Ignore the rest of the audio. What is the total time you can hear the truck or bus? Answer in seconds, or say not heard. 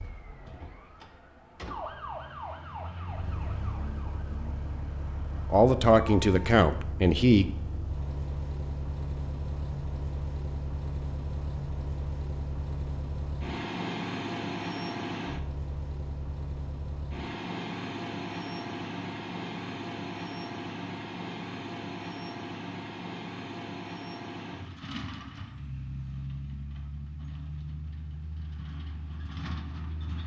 27 s.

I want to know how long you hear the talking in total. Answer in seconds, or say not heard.
2 s.